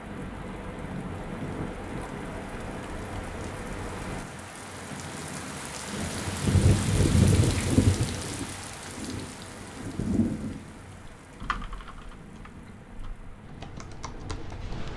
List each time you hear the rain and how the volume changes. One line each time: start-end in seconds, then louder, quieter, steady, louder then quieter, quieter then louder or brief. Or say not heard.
0.0-14.7 louder then quieter.